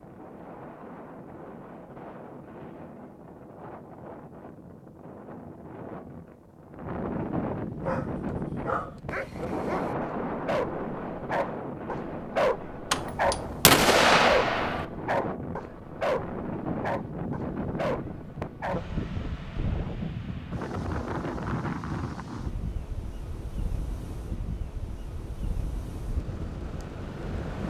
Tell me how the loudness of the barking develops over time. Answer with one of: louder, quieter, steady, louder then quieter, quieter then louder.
louder then quieter.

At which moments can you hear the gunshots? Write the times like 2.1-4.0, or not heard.
12.9-14.8.